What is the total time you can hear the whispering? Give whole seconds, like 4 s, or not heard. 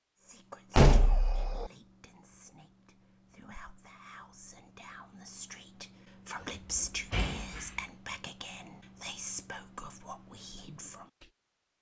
11 s.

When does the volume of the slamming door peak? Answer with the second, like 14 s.
1 s.